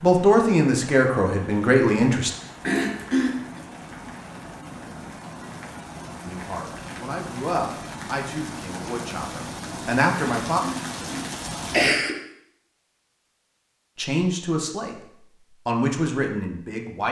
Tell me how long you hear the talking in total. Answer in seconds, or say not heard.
10 s.